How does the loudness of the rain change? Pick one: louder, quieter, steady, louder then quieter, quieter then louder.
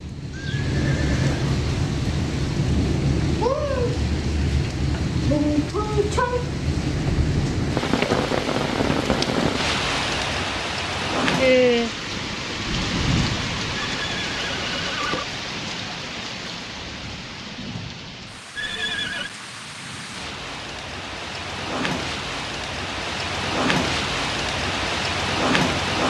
quieter then louder.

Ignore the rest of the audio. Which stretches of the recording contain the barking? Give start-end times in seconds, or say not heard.
not heard.